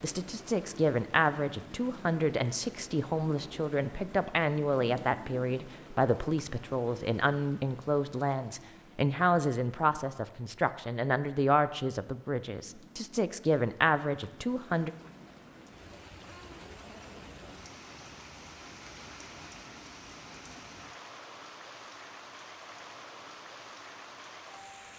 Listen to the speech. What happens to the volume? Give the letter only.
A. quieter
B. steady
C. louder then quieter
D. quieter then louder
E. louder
B.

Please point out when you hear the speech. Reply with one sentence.
The speech can be heard from 0.0 to 14.9 s.